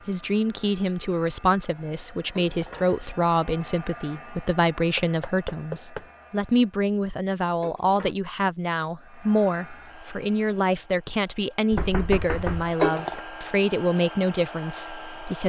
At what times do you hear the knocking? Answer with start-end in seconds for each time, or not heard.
5.0-6.0, 11.7-13.4.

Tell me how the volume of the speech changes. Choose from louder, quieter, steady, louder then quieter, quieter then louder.
steady.